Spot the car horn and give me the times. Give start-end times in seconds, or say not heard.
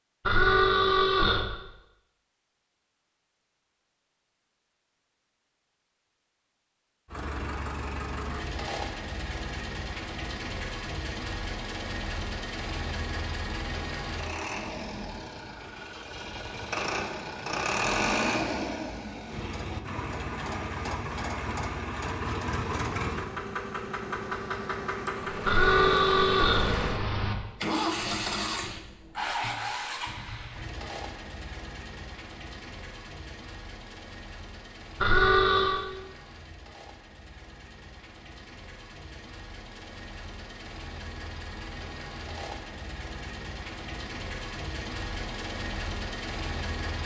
0.2-1.4, 25.4-27.4, 35.0-35.9.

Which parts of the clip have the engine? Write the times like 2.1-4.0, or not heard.
7.0-47.0.